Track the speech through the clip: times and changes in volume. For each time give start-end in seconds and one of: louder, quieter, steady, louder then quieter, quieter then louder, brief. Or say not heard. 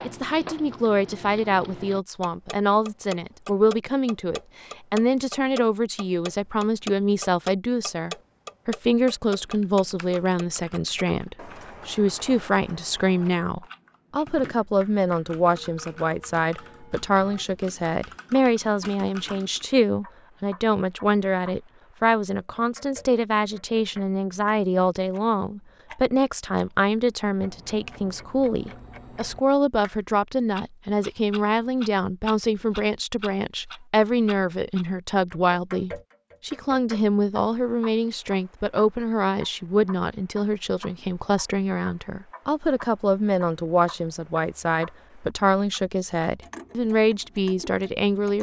0.0-48.3 steady.